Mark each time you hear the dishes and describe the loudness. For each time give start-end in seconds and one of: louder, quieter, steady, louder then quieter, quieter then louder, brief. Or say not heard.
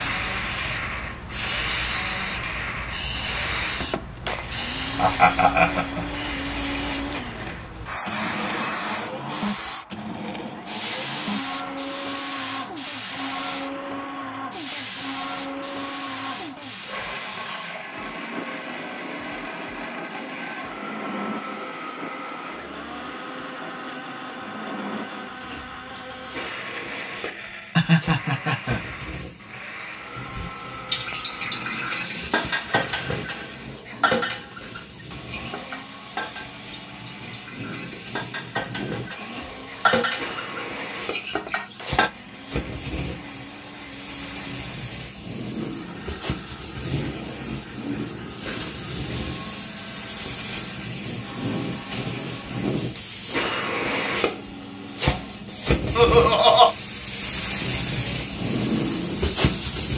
30.1-42.1 quieter then louder.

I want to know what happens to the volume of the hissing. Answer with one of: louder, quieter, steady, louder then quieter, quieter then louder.
quieter then louder.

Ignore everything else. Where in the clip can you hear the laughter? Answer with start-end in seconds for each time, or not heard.
5.0-6.0, 27.8-28.8, 56.0-56.7.